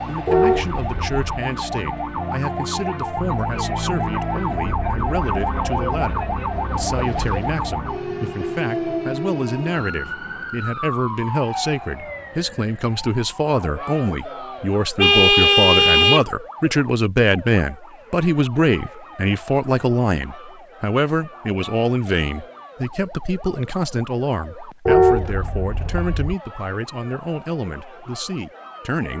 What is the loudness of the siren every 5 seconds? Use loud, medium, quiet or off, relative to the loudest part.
loud, loud, medium, quiet, quiet, quiet.